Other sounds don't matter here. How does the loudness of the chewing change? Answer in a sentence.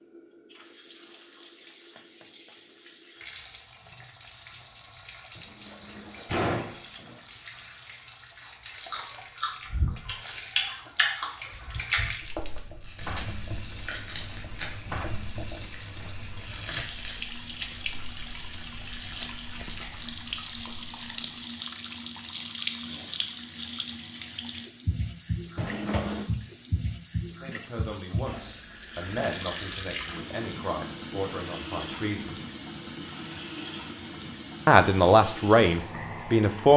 The loudness of the chewing goes down.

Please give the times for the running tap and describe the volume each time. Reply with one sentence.
The running tap can be heard from 0.0 to 36.7 s, getting louder.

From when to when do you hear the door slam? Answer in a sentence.
You can hear the door slam from 5.3 to 7.2 s and from 25.6 to 26.3 s.